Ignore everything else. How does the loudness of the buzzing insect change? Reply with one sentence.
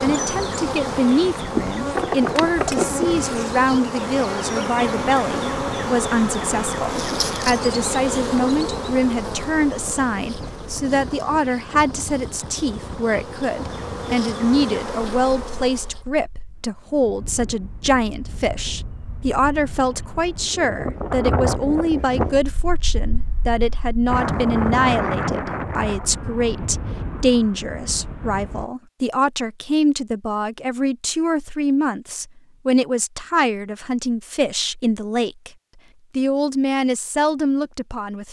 The loudness of the buzzing insect goes down, then up.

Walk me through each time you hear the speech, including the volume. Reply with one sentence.
The speech can be heard from 0.0 to 35.5 s, at a steady volume; and briefly from 36.1 to 38.2 s.